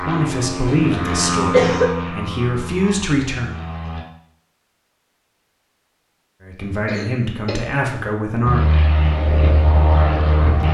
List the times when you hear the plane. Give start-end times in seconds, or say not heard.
0.0-4.0, 8.4-10.6.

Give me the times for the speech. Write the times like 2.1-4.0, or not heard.
0.0-3.5, 6.4-8.7.